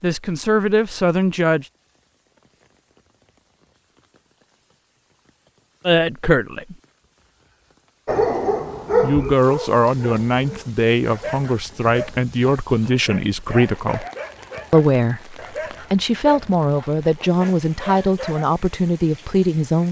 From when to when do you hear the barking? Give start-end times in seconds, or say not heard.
8.1-18.4.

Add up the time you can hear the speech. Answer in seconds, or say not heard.
13 s.